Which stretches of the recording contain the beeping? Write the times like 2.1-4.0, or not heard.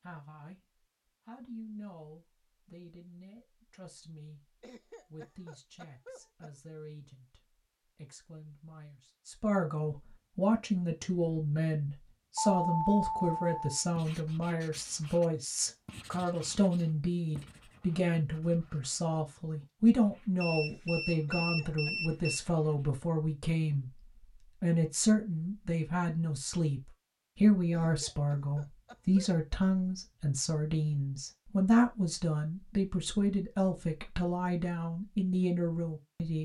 12.3-13.8, 20.4-22.4.